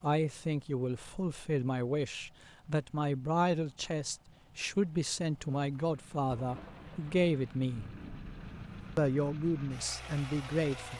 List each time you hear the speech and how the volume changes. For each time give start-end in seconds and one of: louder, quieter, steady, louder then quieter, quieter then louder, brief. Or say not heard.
0.0-7.8 steady
8.9-10.9 brief.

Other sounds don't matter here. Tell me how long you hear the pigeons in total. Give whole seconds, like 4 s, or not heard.
not heard.